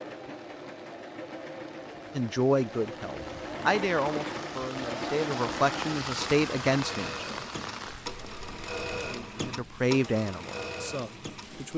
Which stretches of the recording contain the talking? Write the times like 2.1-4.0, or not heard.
2.1-7.4, 9.1-11.7.